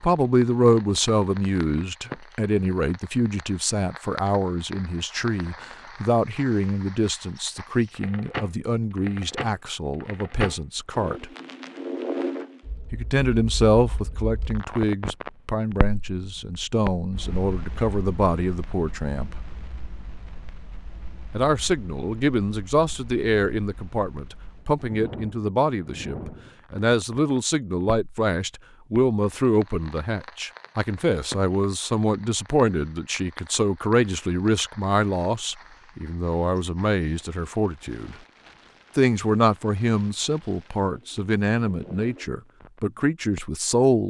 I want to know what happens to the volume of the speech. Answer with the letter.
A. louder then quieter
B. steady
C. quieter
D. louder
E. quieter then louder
B.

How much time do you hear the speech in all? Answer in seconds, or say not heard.
40 s.